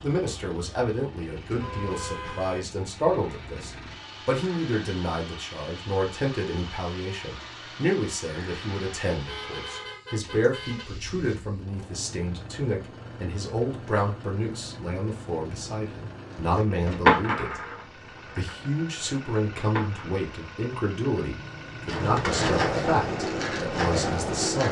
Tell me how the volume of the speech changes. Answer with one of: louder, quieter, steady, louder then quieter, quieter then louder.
steady.